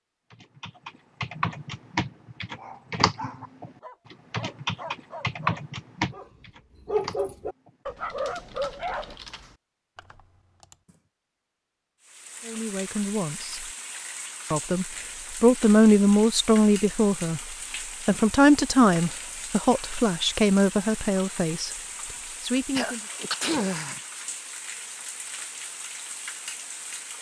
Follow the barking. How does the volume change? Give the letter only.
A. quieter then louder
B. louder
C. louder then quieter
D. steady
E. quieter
A.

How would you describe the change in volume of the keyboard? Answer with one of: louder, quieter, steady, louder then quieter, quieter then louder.
quieter.